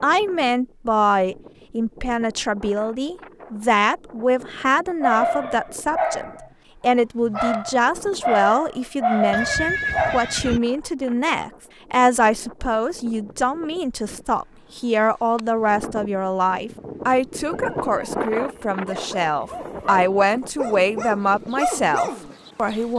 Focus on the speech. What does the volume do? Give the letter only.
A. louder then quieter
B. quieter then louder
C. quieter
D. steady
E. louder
D.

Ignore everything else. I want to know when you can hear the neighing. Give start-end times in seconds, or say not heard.
9.3-10.6.